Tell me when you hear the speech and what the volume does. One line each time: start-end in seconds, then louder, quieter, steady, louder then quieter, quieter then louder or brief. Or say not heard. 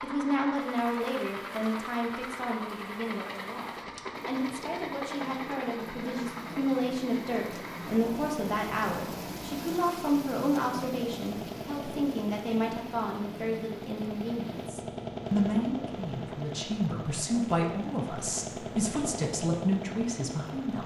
0.0-20.8 steady.